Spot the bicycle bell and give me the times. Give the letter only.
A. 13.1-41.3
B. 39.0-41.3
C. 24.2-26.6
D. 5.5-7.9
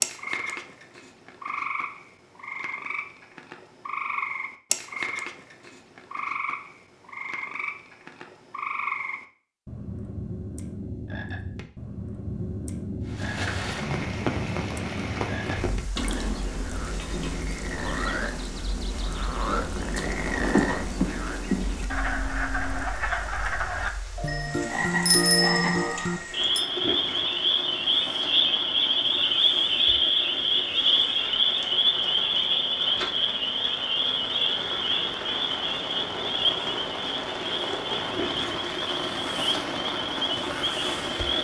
C.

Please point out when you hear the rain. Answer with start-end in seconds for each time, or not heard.
13.1-41.3.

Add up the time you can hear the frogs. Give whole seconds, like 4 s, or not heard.
41 s.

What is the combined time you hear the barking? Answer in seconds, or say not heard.
not heard.